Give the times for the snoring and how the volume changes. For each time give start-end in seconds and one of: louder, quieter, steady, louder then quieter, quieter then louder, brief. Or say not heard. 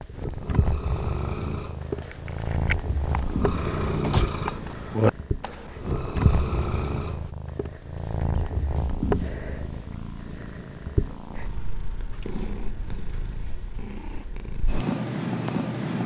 0.1-7.3 louder then quieter.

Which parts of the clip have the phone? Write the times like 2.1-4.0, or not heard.
not heard.